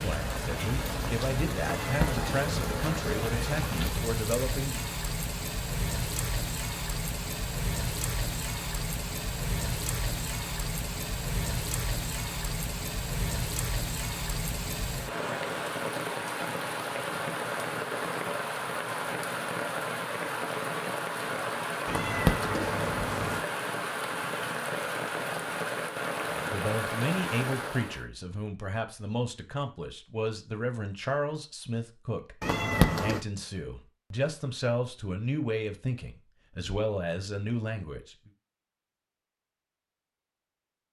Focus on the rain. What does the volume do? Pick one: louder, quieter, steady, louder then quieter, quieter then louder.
steady.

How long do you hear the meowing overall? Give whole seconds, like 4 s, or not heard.
4 s.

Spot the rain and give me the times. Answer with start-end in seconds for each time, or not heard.
0.0-28.1.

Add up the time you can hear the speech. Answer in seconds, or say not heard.
17 s.